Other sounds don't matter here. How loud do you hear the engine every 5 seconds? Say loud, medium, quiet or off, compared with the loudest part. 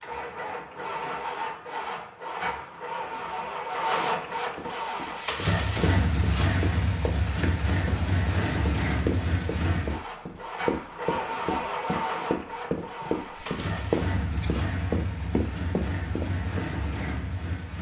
loud, loud, loud, medium.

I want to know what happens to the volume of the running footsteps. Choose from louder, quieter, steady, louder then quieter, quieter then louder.
louder.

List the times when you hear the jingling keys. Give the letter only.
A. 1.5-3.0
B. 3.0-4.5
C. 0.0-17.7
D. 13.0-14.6
D.